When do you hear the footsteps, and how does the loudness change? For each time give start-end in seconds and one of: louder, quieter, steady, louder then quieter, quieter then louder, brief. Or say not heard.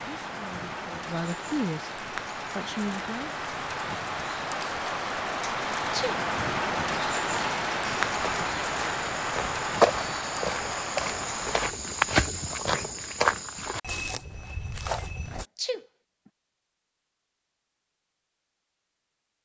8.1-15.4 louder then quieter.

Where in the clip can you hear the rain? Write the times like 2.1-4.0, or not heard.
0.0-11.8.